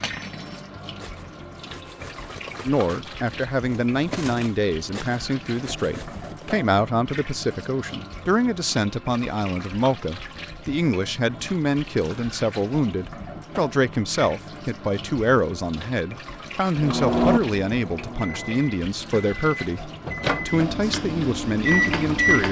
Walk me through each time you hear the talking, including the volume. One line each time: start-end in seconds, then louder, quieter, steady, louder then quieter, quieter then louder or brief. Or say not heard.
2.6-22.4 steady.